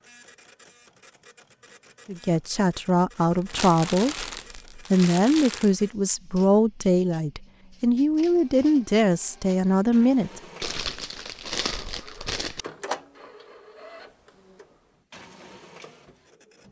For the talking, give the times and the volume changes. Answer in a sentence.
You can hear the talking from 2.0 to 10.4 s, at a steady volume.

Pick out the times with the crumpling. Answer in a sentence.
You can hear the crumpling from 3.4 to 5.7 s and from 10.6 to 12.7 s.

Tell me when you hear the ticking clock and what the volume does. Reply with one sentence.
The ticking clock can't be heard in this clip.